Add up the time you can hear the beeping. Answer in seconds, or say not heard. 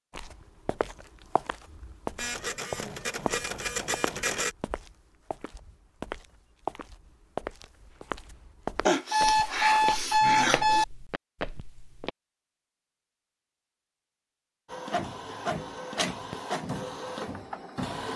2 s.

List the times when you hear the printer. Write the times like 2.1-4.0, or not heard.
2.1-4.5, 14.7-18.1.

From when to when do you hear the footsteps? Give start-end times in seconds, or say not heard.
0.1-12.1.